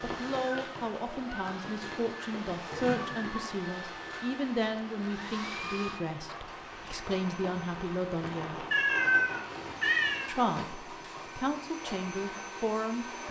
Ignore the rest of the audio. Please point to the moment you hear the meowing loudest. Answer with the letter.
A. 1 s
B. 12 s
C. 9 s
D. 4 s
C.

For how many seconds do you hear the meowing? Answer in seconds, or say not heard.
2 s.